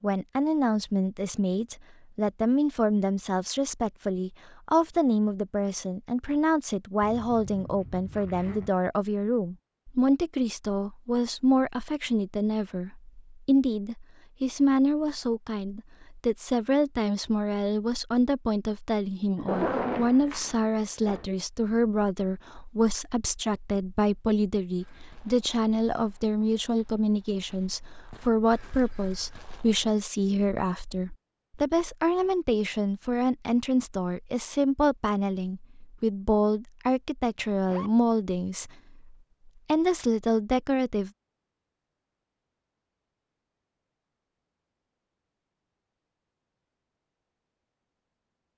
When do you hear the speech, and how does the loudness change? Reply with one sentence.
The speech can be heard from 0.0 to 41.1 s, at a steady volume.